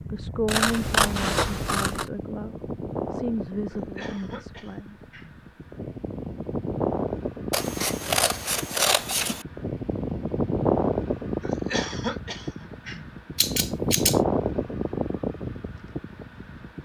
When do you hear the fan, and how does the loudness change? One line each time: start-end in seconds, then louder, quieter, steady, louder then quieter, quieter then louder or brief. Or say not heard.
0.0-16.8 louder.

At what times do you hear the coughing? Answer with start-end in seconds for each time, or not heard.
3.7-5.4, 11.4-13.1.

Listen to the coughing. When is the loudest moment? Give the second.
12 s.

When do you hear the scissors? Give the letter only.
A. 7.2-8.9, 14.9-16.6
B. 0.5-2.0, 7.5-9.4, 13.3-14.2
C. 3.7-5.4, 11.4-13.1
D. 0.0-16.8
B.